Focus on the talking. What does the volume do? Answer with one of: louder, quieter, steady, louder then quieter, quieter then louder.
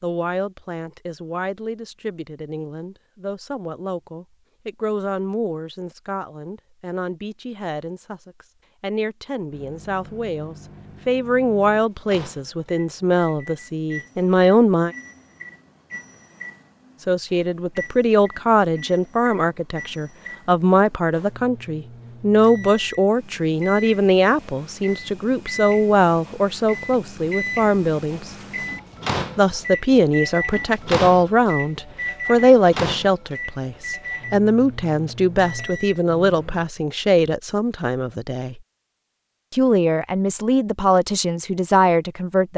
louder.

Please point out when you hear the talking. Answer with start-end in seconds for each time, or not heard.
0.0-14.9, 17.1-28.3, 29.4-38.6, 39.5-42.5.